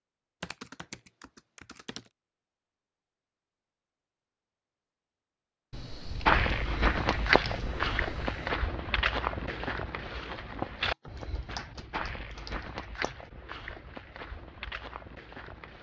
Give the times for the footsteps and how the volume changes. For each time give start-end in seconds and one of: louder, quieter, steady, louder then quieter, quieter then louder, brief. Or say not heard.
6.2-15.7 quieter.